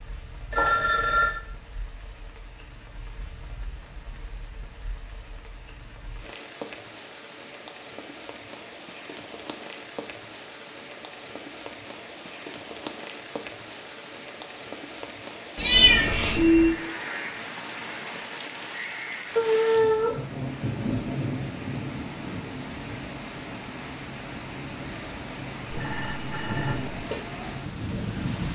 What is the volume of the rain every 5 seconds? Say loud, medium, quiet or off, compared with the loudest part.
quiet, medium, medium, loud, loud, loud.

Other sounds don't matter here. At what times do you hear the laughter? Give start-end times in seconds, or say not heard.
not heard.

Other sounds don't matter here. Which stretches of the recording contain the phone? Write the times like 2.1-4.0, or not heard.
0.5-1.4, 15.7-16.8, 25.7-26.9.